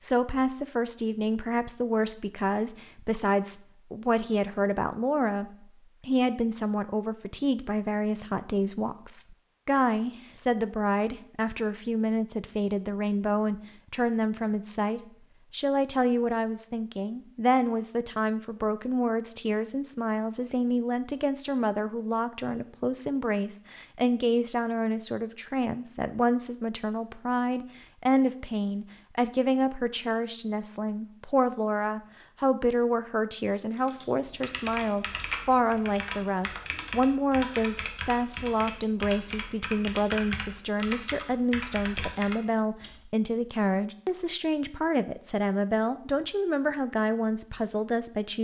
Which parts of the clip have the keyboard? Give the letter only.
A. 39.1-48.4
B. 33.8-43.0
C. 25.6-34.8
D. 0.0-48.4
B.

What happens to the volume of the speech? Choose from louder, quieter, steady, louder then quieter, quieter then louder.
steady.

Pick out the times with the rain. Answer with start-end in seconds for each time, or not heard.
not heard.